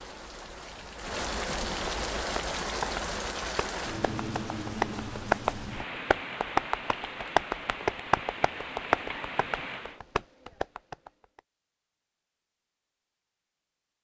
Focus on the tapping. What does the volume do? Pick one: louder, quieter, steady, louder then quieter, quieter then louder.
louder then quieter.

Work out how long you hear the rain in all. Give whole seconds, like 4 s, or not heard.
10 s.